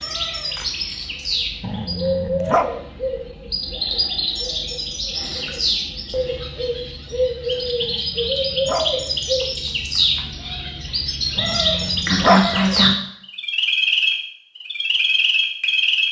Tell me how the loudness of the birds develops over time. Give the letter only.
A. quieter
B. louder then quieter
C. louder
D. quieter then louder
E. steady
C.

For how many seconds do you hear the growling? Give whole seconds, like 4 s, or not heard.
4 s.